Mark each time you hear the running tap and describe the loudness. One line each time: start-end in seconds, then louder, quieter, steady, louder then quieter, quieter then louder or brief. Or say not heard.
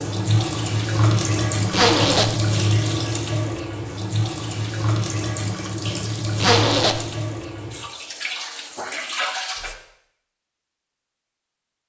0.0-9.8 quieter.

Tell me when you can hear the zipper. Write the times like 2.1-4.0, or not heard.
1.7-2.4, 6.4-7.0.